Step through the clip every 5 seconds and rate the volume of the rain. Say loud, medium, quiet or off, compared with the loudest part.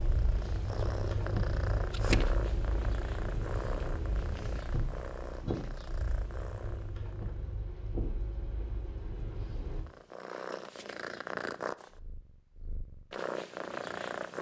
loud, medium, off.